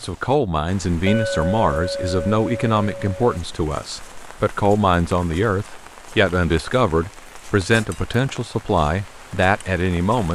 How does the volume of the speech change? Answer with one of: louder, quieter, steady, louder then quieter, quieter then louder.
steady.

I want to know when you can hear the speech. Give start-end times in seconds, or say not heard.
0.0-10.3.